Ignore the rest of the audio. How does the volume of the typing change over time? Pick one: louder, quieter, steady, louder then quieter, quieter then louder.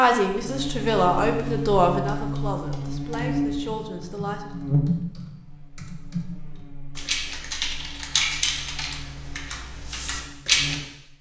louder then quieter.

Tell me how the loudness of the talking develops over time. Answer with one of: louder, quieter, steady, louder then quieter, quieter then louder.
quieter.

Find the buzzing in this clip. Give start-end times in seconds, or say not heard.
0.0-11.1.